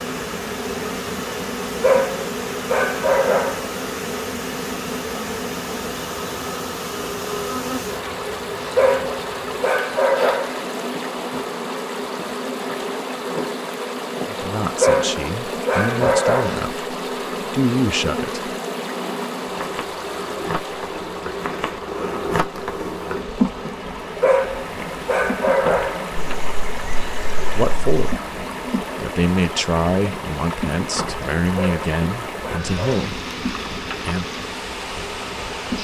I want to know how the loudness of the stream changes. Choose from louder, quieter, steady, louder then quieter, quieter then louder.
steady.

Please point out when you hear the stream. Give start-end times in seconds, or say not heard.
0.0-35.7.